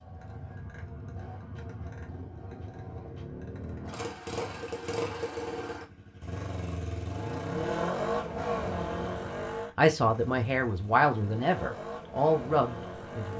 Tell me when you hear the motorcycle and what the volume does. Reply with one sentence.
The motorcycle can be heard from 0.0 to 13.3 s, getting louder then quieter.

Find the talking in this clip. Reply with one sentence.
The talking can be heard from 9.8 to 13.3 s.